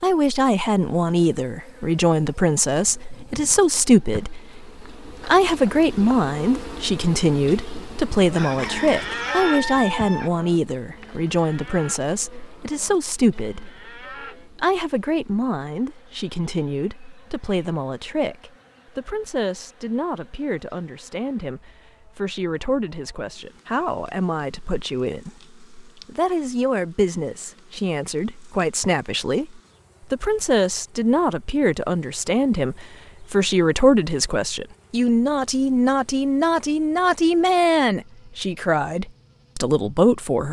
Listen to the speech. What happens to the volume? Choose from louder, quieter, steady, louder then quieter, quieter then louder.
quieter then louder.